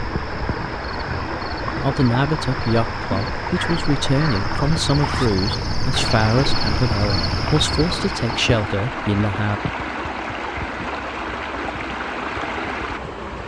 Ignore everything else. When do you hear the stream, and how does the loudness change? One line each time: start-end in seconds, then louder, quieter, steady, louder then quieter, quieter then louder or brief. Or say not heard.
0.0-13.4 steady.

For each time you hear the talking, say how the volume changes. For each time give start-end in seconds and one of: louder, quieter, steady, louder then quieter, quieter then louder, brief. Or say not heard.
1.6-9.6 steady.